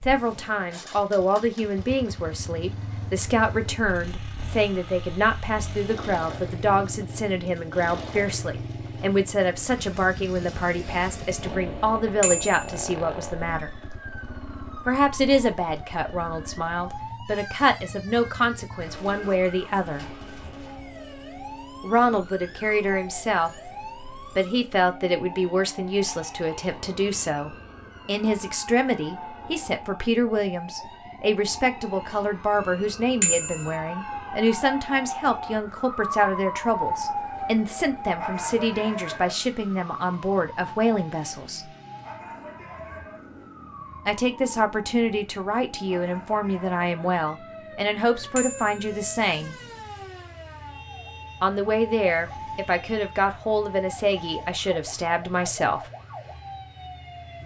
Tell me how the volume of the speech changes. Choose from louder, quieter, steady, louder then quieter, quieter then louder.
steady.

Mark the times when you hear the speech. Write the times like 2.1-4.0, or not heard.
0.1-13.8, 14.8-20.1, 21.8-41.6, 44.0-49.5, 51.4-55.9.